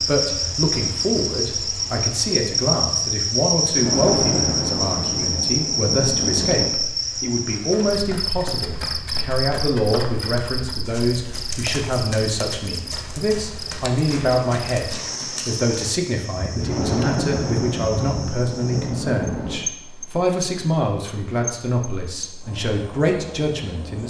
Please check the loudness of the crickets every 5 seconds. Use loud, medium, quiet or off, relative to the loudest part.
loud, loud, medium, medium, quiet.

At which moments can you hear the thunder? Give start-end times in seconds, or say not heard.
3.8-6.8, 16.6-19.7.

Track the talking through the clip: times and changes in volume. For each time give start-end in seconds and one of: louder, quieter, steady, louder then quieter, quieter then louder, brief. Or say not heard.
0.0-24.0 steady.